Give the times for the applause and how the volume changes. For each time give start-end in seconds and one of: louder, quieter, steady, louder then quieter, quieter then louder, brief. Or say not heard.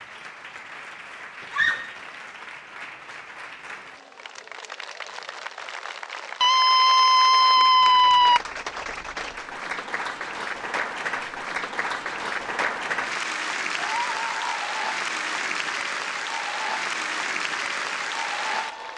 0.0-18.9 louder.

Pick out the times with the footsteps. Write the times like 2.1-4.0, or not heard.
not heard.